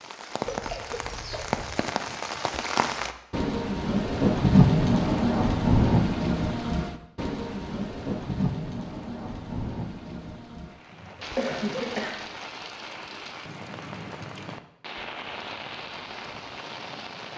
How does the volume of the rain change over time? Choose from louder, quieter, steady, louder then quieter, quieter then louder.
louder then quieter.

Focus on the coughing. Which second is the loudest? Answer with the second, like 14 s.
12 s.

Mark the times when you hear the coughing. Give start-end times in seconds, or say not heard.
0.5-1.9, 11.2-12.2.